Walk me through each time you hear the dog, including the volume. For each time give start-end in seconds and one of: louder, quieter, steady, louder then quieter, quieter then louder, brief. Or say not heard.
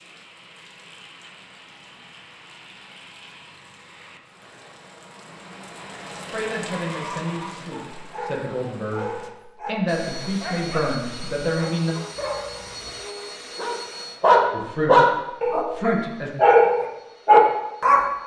6.7-18.1 louder.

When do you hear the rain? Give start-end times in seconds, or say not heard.
0.0-9.3.